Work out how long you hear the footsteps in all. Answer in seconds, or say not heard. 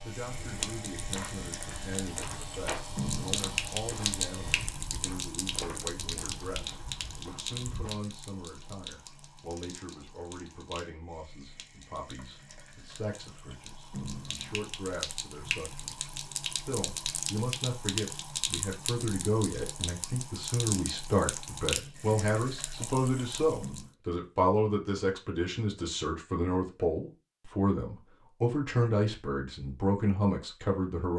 8 s.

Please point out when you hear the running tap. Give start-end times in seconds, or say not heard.
0.0-23.9.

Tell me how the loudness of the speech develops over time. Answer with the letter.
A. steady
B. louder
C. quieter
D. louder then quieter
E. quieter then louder
B.